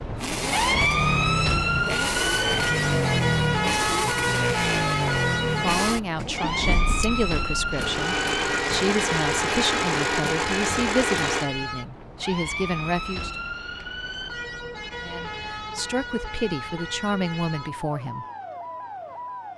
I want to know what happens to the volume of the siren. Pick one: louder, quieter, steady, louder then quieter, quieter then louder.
quieter.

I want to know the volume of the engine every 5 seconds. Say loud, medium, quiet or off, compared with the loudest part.
loud, loud, loud, off.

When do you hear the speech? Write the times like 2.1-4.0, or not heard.
5.5-13.3, 15.0-18.2.